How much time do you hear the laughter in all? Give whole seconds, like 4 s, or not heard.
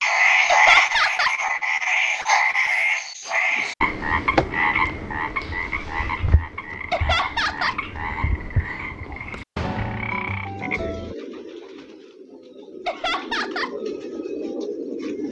3 s.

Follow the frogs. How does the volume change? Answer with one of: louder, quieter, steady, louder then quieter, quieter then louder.
quieter.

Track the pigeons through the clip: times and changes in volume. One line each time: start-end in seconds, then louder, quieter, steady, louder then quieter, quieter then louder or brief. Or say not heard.
10.4-15.2 quieter then louder.